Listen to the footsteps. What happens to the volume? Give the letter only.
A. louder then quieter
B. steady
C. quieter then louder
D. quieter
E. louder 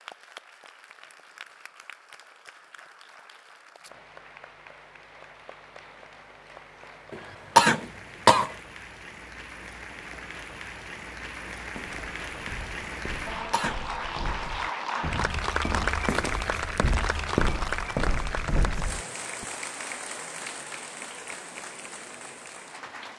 E.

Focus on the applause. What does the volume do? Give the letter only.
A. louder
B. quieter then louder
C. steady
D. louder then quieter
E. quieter
D.